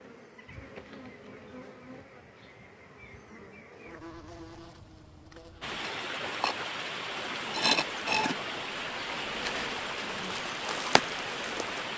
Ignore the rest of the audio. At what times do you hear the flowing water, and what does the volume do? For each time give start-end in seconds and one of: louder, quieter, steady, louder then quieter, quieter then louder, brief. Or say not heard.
5.6-11.9 steady.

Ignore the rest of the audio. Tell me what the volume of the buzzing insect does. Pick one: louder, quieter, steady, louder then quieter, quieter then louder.
louder then quieter.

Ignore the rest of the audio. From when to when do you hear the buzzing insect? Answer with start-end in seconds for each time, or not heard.
0.0-11.9.